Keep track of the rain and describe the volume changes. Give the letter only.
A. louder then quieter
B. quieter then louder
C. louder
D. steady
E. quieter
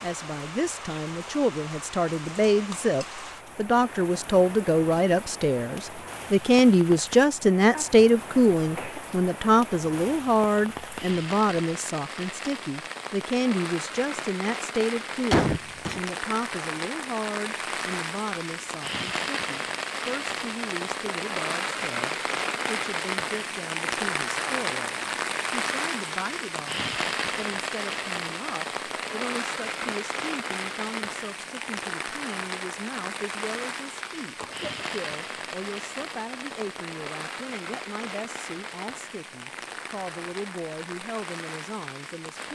A.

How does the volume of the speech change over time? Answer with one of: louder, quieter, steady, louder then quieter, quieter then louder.
quieter.